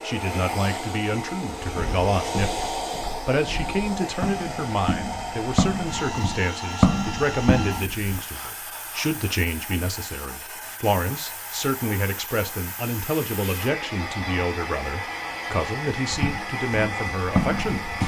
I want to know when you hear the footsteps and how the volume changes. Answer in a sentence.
You can hear the footsteps from 1.6 to 8.2 s, getting louder; and briefly from 16.1 to 18.0 s.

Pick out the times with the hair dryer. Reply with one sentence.
The hair dryer can be heard from 0.0 to 18.0 s.